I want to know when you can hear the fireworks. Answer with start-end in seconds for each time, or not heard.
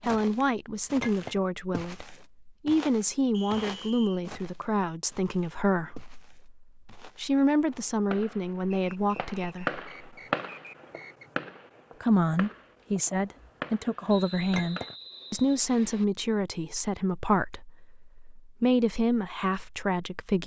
7.3-14.9.